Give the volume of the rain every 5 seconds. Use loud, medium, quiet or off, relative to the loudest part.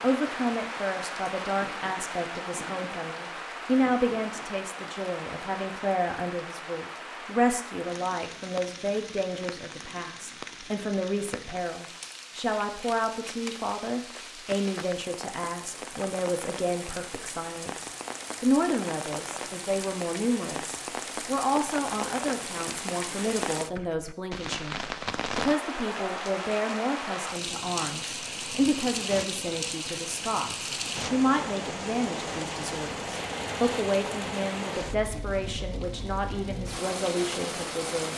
loud, medium, medium, medium, loud, loud, loud, loud.